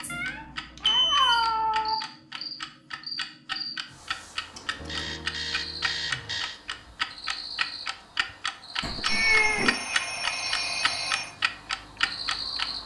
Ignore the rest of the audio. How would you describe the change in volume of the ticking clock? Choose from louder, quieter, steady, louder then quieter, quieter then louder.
louder.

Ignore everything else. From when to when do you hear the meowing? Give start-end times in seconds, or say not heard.
0.1-1.9, 4.5-5.2, 8.8-9.8.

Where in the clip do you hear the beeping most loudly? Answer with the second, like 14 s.
1 s.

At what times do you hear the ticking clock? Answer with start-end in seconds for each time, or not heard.
0.0-12.8.